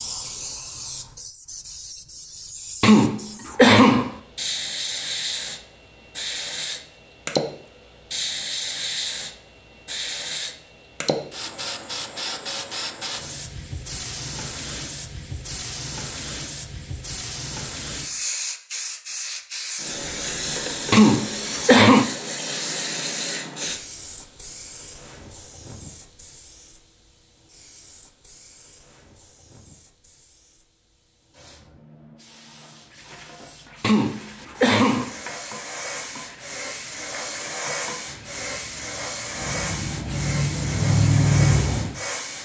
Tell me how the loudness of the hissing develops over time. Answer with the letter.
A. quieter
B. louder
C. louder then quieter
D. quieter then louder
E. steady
D.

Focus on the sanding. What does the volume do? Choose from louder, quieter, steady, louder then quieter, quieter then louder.
louder.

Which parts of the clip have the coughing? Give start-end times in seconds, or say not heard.
2.8-4.1, 20.9-22.1, 33.8-35.1.